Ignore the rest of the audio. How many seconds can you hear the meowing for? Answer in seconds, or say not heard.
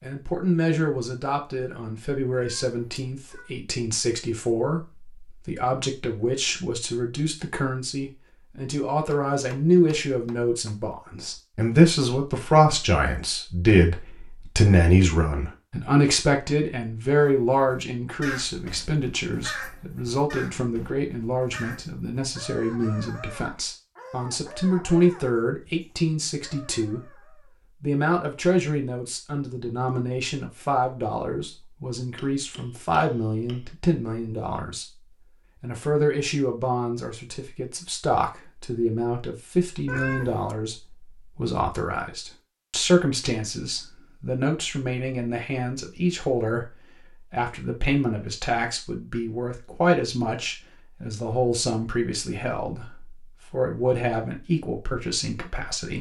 2 s.